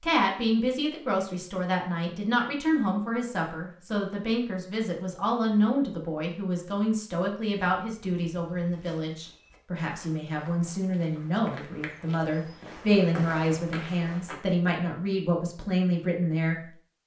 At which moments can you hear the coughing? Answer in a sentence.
You can't hear the coughing here.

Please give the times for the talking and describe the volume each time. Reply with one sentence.
You can hear the talking from 0.0 to 16.6 s, at a steady volume.